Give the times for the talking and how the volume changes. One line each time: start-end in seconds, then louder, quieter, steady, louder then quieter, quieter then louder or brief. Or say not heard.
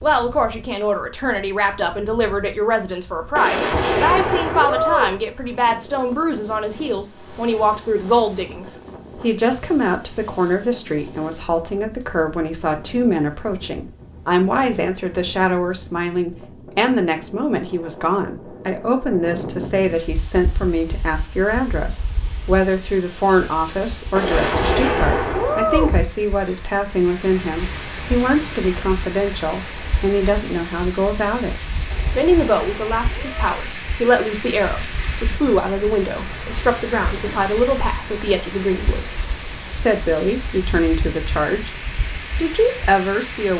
0.0-41.8 steady
42.4-43.5 brief.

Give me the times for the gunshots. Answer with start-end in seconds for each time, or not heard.
3.4-5.2, 24.1-26.0, 31.9-33.5.